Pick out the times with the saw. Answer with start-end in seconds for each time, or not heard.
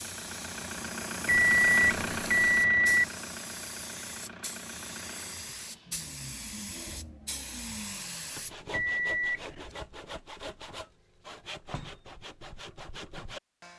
8.2-13.7.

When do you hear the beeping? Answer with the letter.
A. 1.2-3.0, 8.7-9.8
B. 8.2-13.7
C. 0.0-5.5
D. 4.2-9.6
A.